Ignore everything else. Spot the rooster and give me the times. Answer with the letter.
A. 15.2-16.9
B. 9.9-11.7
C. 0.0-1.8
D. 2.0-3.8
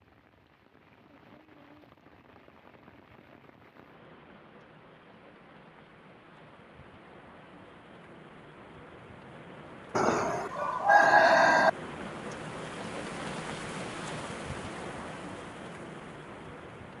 B.